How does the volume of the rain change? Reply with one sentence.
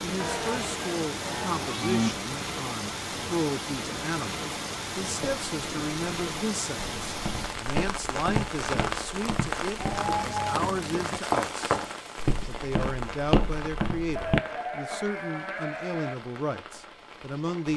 The volume of the rain goes down.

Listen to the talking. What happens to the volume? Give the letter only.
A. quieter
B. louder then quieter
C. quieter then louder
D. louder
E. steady
E.